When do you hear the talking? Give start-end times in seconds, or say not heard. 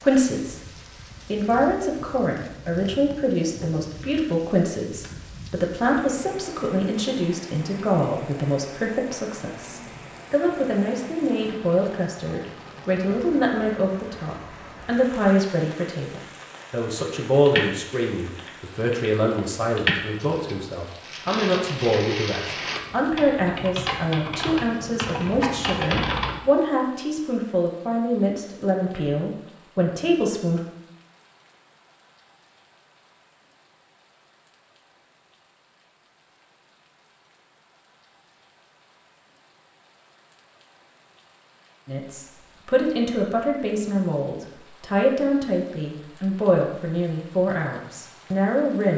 0.0-0.6, 1.2-30.6, 41.9-48.9.